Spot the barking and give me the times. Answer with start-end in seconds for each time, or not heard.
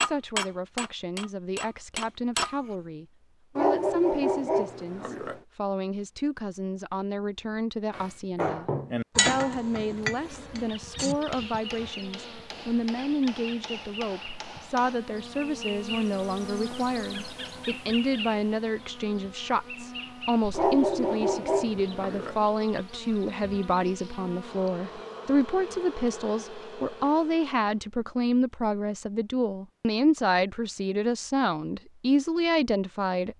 3.5-5.4, 20.5-22.4.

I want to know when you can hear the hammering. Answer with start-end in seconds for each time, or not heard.
0.0-2.6, 7.9-15.0.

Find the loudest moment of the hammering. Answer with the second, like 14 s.
9 s.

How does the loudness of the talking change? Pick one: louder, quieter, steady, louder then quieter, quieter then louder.
louder.